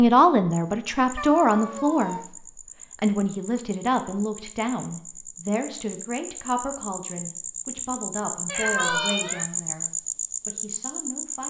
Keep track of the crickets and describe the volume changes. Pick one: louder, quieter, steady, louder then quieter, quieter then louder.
louder.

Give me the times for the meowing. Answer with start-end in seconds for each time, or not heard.
1.1-2.2, 8.4-9.4.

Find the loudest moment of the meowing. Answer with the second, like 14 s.
9 s.